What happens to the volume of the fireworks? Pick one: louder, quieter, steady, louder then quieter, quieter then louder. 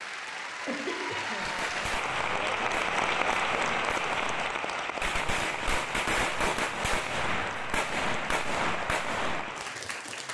louder.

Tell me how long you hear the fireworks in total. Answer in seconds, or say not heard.
8 s.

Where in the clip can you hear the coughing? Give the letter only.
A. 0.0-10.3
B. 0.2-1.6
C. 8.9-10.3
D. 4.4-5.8
B.